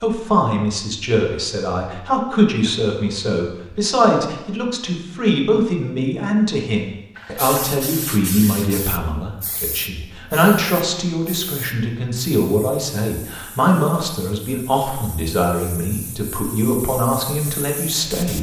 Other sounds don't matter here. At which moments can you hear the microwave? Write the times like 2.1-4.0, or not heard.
not heard.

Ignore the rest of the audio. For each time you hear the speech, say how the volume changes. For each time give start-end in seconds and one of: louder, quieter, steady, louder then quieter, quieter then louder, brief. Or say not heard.
0.0-18.3 steady.